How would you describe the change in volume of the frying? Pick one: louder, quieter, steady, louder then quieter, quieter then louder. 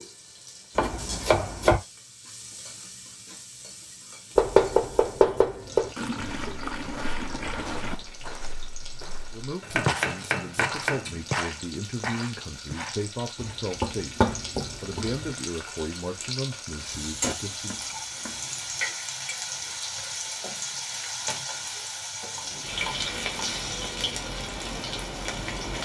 louder.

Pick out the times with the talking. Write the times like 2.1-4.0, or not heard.
9.3-17.8.